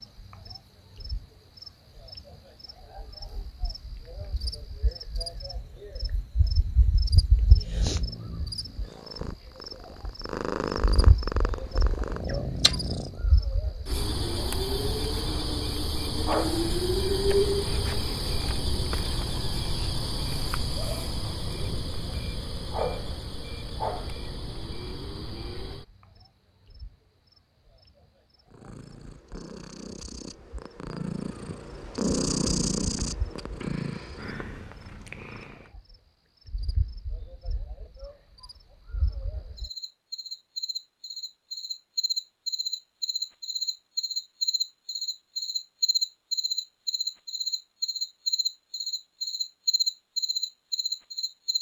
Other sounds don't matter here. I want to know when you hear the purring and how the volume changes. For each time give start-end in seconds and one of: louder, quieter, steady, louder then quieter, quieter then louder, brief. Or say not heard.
7.5-13.2 louder
28.4-35.8 louder then quieter.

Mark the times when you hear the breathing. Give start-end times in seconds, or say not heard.
not heard.